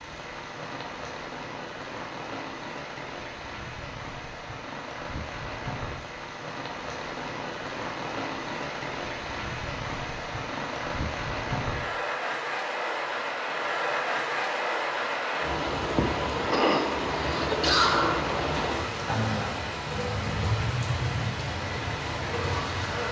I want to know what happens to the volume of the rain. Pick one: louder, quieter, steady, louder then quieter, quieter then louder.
louder.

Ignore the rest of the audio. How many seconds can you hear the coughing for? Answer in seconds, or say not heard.
2 s.